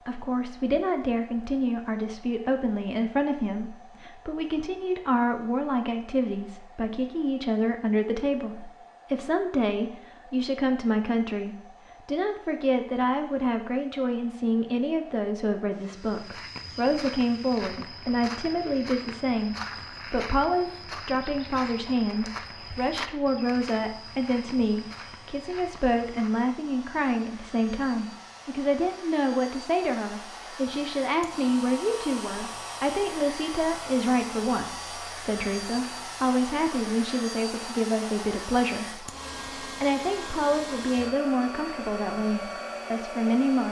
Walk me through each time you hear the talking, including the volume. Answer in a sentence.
You can hear the talking from 0.1 to 43.6 s, at a steady volume.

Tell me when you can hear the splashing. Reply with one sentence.
You can't hear the splashing here.